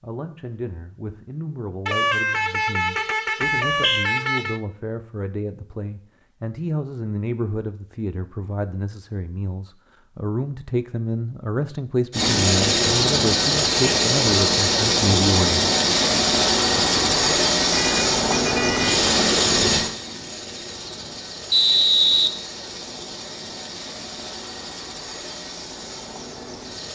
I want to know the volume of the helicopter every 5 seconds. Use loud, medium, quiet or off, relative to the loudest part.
off, off, loud, loud, quiet, quiet.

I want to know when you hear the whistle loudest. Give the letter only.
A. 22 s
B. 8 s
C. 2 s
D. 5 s
A.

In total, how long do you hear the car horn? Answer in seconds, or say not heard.
4 s.